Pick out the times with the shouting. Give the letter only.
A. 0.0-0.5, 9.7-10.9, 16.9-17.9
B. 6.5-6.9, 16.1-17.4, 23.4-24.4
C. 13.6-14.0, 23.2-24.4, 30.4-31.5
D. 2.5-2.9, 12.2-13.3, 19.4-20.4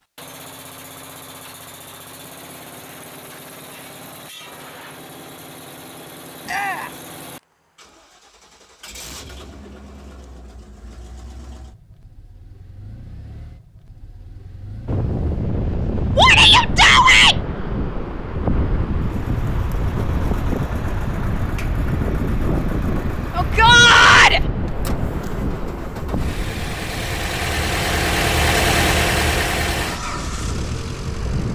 B.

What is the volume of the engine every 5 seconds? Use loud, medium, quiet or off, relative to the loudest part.
quiet, quiet, quiet, quiet, quiet, loud, medium.